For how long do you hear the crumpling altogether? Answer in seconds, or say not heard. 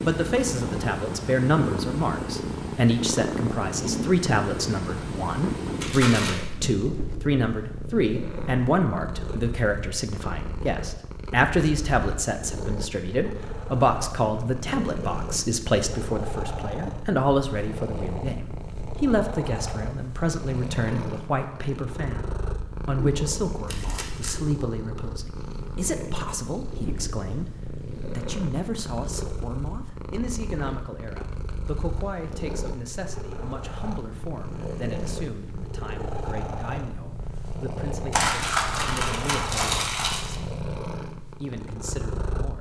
4 s.